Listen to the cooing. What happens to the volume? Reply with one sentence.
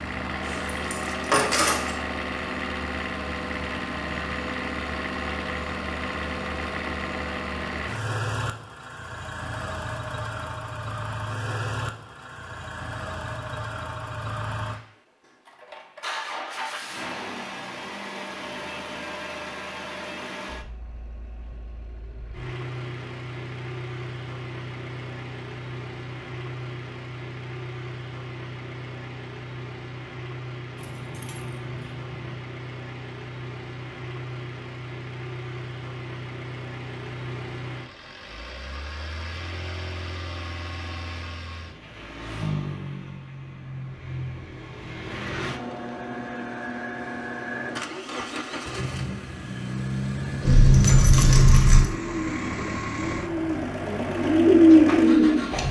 The volume of the cooing goes up.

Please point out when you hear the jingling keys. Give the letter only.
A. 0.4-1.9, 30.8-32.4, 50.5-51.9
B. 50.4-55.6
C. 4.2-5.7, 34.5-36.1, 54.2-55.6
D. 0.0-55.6
A.